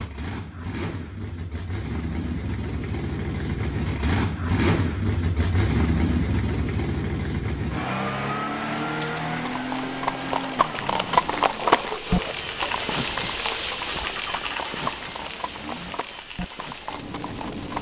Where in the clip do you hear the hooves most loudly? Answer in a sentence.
The volume of the hooves peaks at 12 seconds.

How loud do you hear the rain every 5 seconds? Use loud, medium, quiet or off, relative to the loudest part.
off, medium, loud, medium.